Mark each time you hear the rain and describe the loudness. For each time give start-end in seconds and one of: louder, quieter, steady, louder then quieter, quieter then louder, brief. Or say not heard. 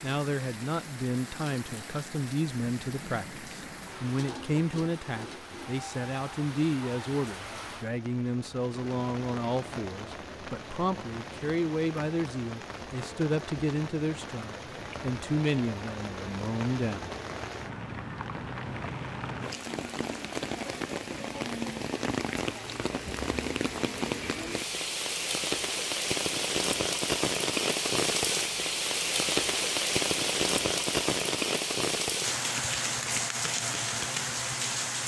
0.0-35.0 louder.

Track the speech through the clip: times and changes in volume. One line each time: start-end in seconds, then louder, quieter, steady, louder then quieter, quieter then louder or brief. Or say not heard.
0.0-17.0 steady.